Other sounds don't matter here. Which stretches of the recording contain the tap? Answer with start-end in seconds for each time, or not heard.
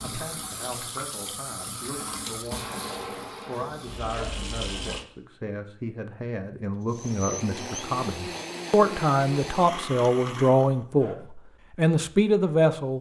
0.0-5.0.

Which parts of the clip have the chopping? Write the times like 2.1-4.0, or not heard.
not heard.